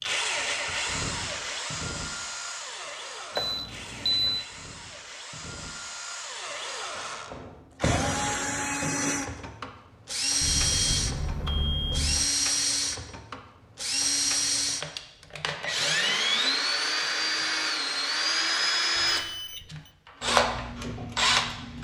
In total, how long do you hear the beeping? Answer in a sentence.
You can hear the beeping for 4 seconds altogether.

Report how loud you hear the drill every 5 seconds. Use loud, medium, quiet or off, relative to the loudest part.
medium, medium, loud, loud, loud.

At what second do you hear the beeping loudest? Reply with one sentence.
The volume of the beeping peaks at 4 seconds.